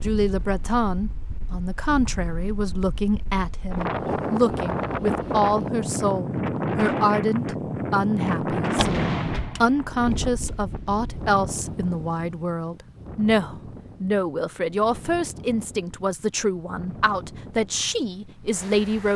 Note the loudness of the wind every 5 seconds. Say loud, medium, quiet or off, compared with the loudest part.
medium, loud, medium, quiet.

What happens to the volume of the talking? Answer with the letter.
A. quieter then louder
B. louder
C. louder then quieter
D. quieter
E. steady
E.